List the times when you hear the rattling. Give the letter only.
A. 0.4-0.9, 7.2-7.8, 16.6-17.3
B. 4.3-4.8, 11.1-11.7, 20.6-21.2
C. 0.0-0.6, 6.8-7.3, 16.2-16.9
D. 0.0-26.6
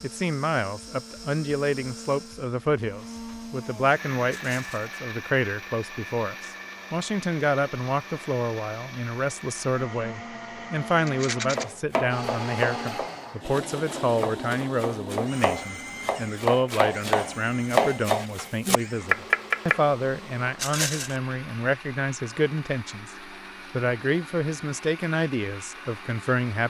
B.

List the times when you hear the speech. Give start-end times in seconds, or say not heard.
0.0-26.6.